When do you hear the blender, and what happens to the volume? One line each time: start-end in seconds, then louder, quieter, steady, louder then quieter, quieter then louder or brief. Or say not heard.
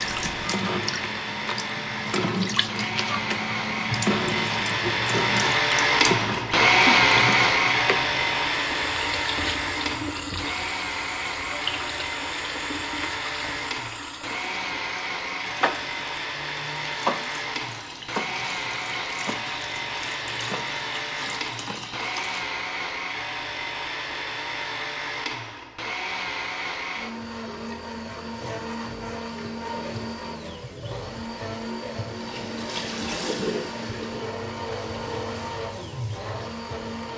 0.0-37.1 quieter.